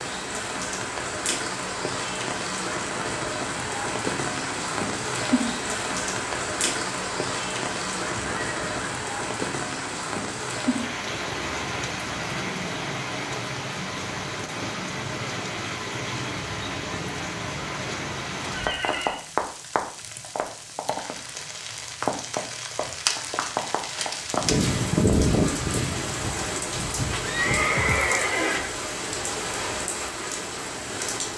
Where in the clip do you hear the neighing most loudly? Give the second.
28 s.